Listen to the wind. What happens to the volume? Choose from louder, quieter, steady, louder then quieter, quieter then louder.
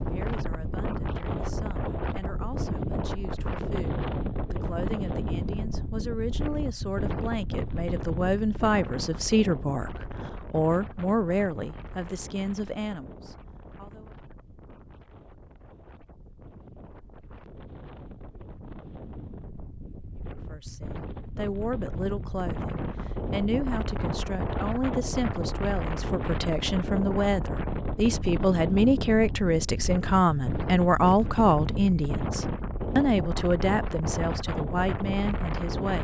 quieter then louder.